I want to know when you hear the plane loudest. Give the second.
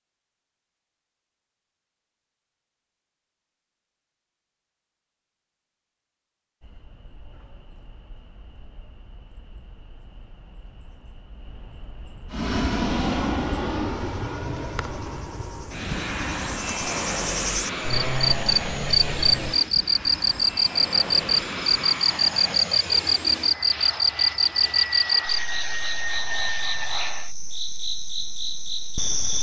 13 s.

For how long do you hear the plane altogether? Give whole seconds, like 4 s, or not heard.
15 s.